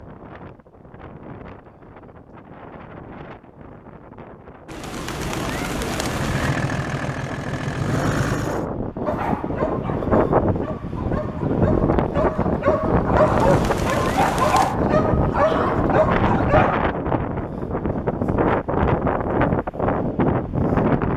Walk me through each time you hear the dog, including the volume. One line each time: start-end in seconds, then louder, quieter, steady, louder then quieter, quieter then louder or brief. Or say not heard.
9.1-16.8 louder.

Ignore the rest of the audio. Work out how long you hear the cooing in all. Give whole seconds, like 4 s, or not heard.
3 s.